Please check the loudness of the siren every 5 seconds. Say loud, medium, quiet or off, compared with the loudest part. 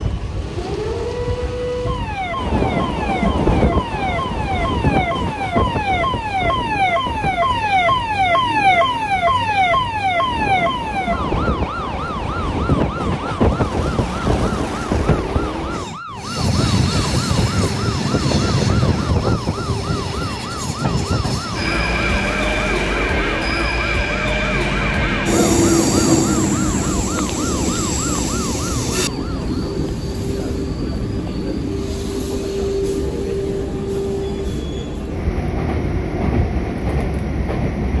medium, loud, medium, medium, medium, medium, off, off.